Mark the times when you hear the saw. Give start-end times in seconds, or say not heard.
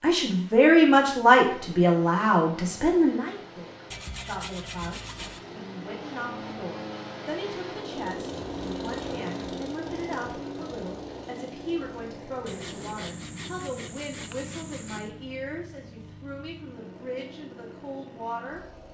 3.9-5.5, 12.4-15.1.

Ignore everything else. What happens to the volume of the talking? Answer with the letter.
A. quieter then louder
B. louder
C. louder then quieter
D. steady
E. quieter
E.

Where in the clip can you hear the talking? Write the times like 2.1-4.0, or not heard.
0.0-18.6.